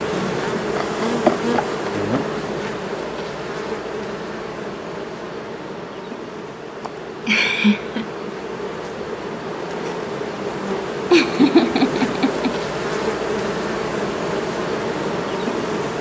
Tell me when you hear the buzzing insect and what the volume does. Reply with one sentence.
The buzzing insect can be heard from 0.0 to 15.9 s, getting quieter then louder.